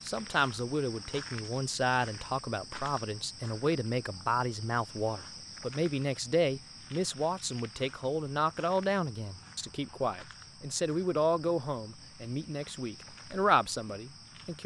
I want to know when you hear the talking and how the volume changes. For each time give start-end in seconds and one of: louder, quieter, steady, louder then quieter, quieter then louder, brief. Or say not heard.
0.1-14.6 steady.